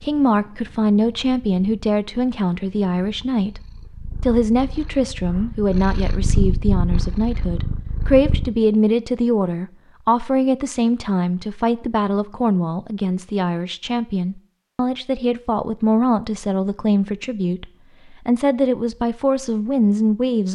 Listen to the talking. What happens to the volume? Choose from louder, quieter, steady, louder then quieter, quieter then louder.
steady.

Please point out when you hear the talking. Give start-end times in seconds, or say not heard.
0.0-3.6, 4.2-20.5.